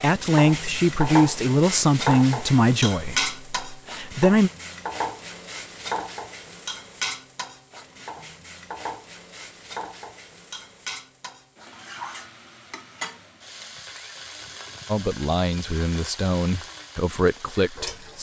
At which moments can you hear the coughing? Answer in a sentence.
You can't hear the coughing here.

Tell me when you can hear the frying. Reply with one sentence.
The frying can be heard from 0.0 to 18.1 s.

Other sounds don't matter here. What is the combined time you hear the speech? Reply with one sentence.
The speech can be heard for 8 seconds in total.